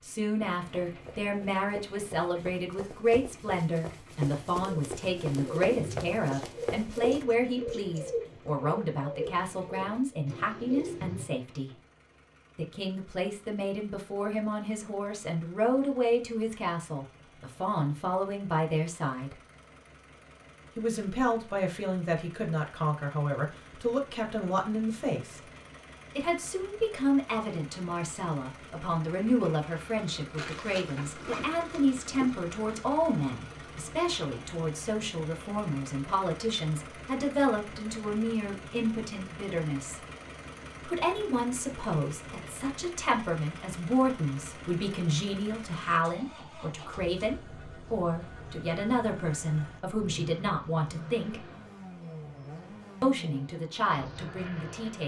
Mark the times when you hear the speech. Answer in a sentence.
You can hear the speech from 0.0 to 11.7 s, from 12.6 to 19.4 s, from 20.8 to 25.4 s, from 26.1 to 40.0 s, from 40.9 to 51.5 s and from 53.0 to 55.0 s.